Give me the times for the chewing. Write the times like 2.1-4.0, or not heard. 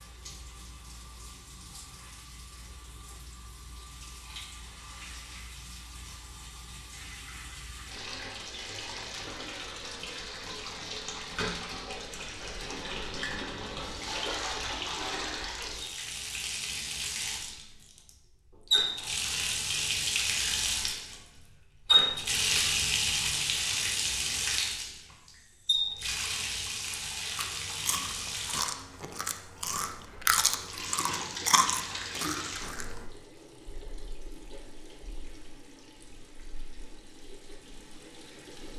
27.4-33.0.